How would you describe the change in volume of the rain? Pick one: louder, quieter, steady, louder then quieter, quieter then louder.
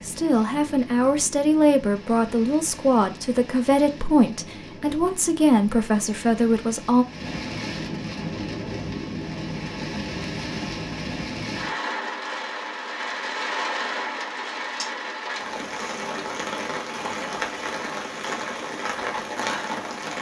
louder.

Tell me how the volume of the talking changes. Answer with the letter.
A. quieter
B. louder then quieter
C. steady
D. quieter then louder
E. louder
C.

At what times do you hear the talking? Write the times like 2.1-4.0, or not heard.
0.0-7.0.